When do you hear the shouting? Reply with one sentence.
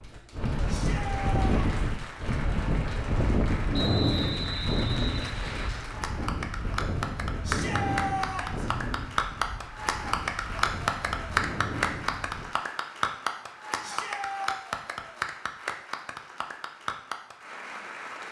You can hear the shouting from 0.7 to 1.7 s, from 7.4 to 8.7 s and from 13.8 to 14.6 s.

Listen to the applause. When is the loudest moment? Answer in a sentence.
The loudest moment of the applause is at 11 seconds.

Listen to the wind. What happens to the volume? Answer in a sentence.
The volume of the wind goes down.